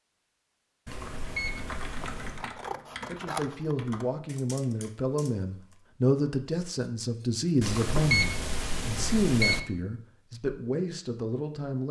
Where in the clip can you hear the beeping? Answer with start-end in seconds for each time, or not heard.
0.8-2.5, 7.6-9.6.